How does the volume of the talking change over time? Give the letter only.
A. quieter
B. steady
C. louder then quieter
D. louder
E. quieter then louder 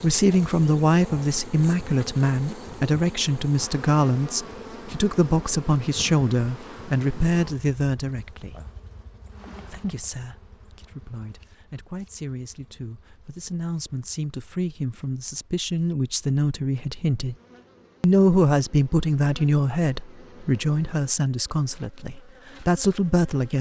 E.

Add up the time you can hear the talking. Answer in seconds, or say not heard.
22 s.